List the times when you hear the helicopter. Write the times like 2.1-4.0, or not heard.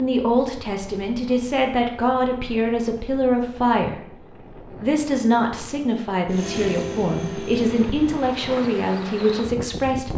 6.3-8.3.